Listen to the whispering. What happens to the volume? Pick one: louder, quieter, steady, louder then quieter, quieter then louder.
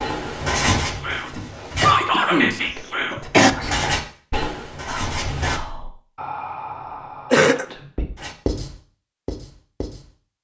quieter.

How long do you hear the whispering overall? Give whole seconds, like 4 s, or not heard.
7 s.